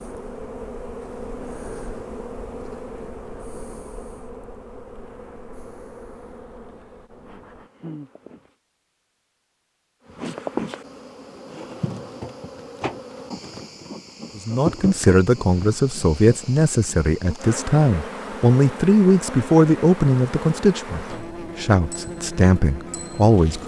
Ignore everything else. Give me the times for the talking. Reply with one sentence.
The talking can be heard from 14.3 to 23.6 s.